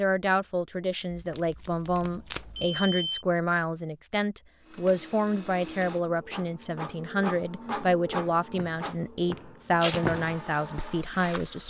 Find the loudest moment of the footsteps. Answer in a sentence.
The volume of the footsteps peaks at 10 seconds.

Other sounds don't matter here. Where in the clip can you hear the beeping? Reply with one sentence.
The beeping can be heard from 2.0 to 3.2 s.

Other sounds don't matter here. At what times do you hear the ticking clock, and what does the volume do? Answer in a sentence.
You can't hear the ticking clock here.